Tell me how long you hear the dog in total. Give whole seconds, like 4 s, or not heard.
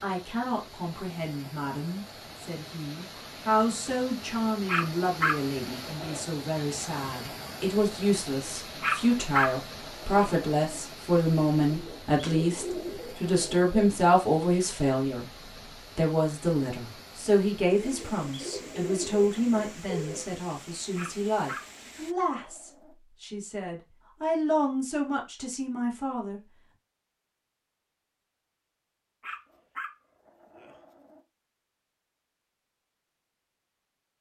8 s.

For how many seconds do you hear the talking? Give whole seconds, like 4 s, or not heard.
26 s.